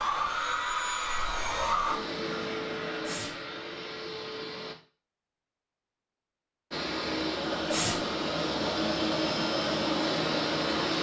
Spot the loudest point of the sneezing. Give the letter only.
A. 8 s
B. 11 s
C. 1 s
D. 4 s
A.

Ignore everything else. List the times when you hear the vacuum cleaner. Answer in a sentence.
The vacuum cleaner can be heard from 0.0 to 4.8 s and from 6.7 to 10.9 s.